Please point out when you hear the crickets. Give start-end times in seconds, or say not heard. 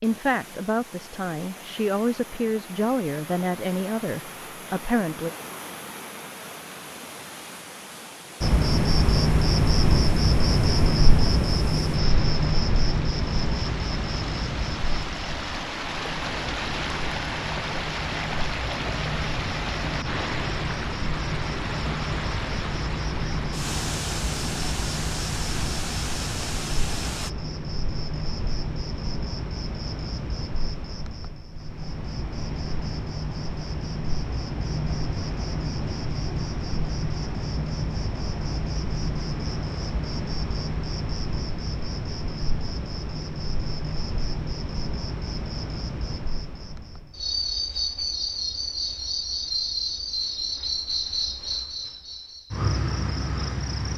8.4-53.9.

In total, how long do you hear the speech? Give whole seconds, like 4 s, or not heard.
5 s.